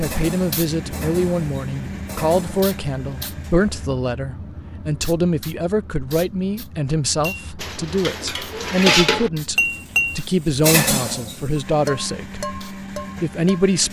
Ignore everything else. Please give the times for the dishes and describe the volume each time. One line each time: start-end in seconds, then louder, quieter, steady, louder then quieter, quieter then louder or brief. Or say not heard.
0.0-2.7 brief
7.2-13.7 louder then quieter.